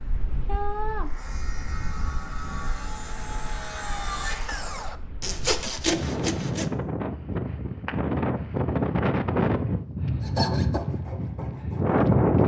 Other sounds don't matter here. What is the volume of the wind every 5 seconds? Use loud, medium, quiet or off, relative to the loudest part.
quiet, loud, loud.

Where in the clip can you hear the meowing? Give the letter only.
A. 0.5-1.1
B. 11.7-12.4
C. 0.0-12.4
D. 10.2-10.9
A.